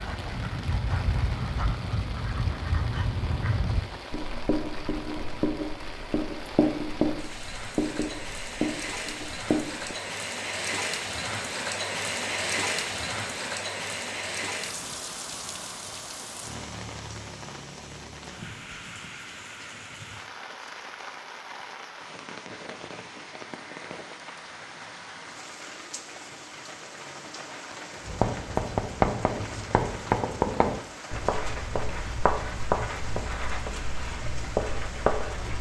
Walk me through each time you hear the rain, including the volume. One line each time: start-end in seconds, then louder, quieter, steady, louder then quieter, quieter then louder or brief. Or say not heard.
0.0-35.5 louder then quieter.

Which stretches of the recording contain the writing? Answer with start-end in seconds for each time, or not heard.
0.0-9.9, 28.0-35.5.